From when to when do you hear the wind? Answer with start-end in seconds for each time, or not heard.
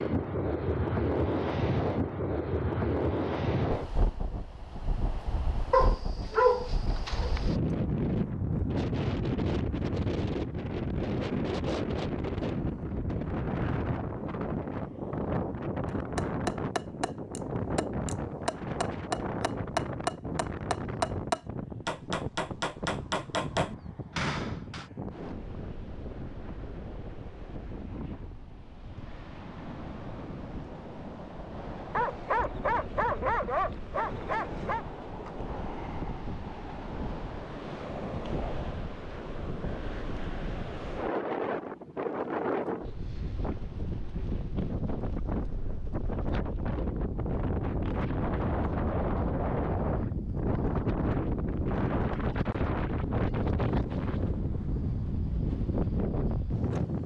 0.0-57.0.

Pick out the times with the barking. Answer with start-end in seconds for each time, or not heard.
5.7-7.6, 31.9-34.9.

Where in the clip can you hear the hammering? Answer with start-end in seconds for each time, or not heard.
15.8-24.9.